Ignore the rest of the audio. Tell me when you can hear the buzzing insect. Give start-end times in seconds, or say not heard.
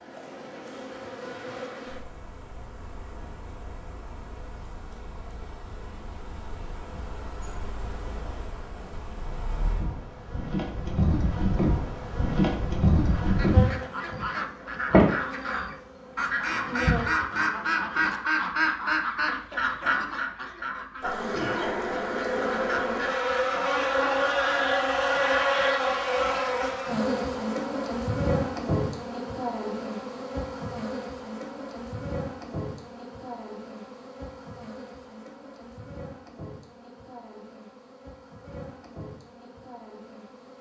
0.0-18.2, 21.0-40.5.